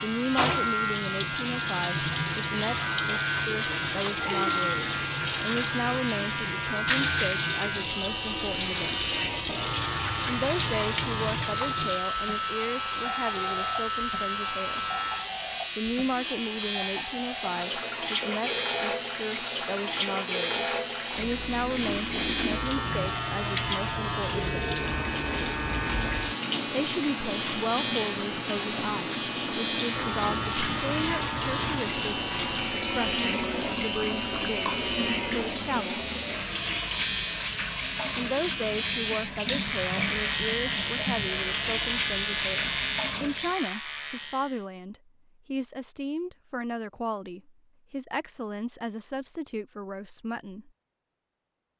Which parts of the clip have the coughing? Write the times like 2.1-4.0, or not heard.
not heard.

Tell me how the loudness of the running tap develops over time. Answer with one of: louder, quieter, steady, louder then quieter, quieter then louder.
steady.